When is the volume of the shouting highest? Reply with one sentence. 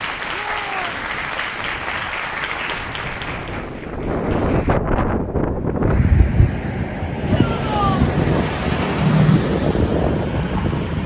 The loudest moment of the shouting is at 8 seconds.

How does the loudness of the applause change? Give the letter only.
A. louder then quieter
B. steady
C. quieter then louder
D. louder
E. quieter
E.